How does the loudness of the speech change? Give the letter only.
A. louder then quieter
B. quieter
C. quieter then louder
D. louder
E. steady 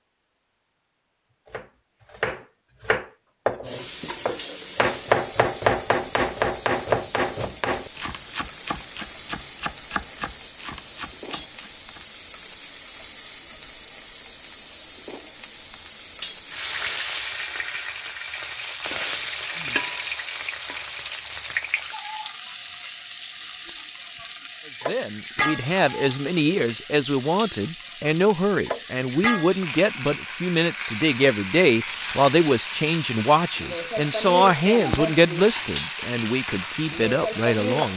E.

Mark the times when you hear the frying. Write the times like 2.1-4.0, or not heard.
3.6-37.9.